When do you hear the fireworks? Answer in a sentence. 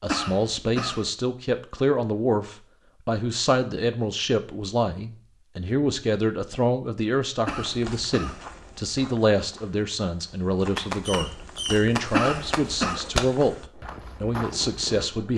The fireworks can be heard from 10.8 to 15.3 s.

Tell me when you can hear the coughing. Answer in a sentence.
The coughing can be heard from 0.1 to 1.1 s, from 7.5 to 8.4 s and from 12.1 to 13.0 s.